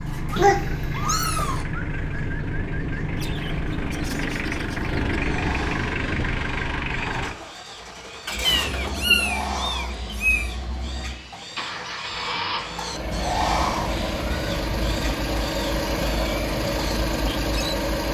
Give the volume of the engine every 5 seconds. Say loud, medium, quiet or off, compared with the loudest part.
loud, loud, medium, loud.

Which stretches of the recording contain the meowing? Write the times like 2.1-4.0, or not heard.
0.3-1.6, 8.4-10.5, 13.1-15.1.